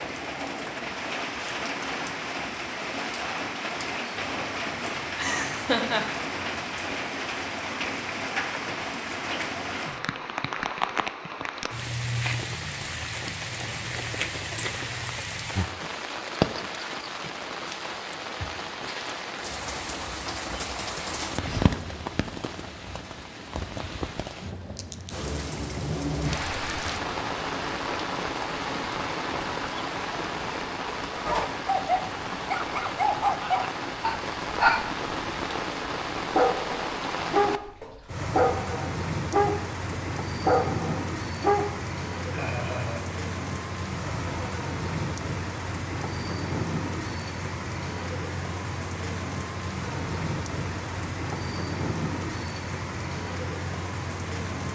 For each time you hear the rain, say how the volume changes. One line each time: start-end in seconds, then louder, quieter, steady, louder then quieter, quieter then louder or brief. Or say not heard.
0.0-54.7 steady.